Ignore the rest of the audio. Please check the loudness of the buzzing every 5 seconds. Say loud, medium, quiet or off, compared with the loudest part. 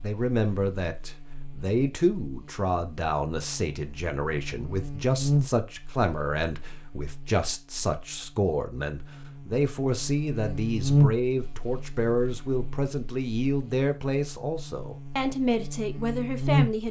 quiet, medium, loud, loud.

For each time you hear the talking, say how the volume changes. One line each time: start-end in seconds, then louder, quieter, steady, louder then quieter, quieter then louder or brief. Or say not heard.
0.0-16.8 steady.